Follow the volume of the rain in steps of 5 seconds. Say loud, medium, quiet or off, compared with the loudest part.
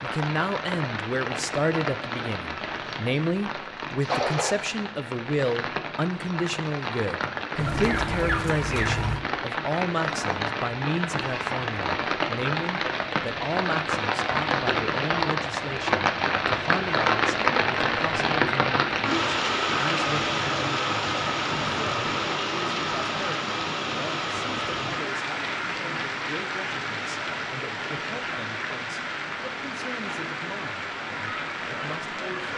medium, medium, loud, loud, loud, medium, medium.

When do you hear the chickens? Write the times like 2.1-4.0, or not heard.
7.5-9.2.